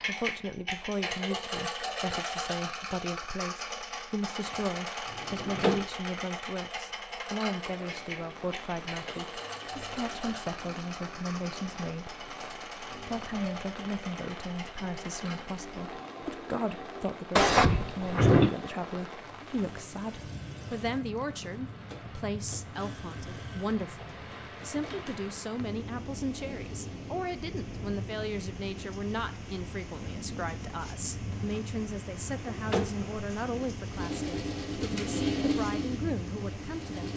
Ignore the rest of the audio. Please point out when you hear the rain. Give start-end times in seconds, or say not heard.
7.7-37.1.